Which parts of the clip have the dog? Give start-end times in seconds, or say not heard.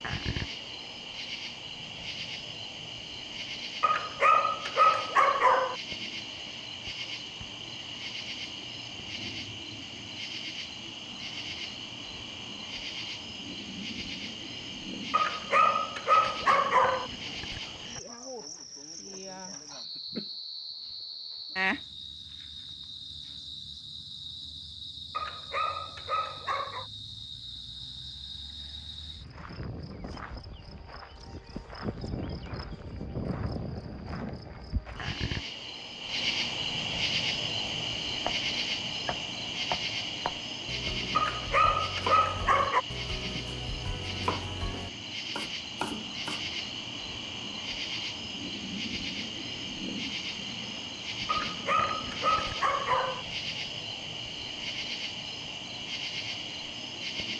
3.8-5.8, 15.1-17.1, 25.1-26.9, 41.1-42.9, 51.2-53.2.